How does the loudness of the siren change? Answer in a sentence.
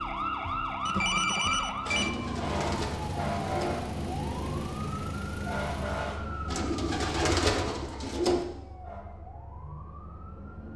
The loudness of the siren goes down.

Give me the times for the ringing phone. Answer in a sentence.
You can hear the ringing phone from 0.8 to 2.1 s.